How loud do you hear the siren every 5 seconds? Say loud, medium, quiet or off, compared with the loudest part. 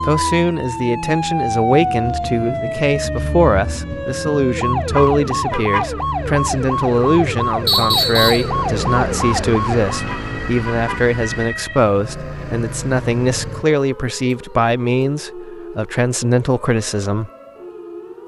loud, loud, medium, quiet.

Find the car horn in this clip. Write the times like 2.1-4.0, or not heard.
4.9-5.9, 10.1-11.1.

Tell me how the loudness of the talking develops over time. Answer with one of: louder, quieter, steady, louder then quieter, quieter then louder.
steady.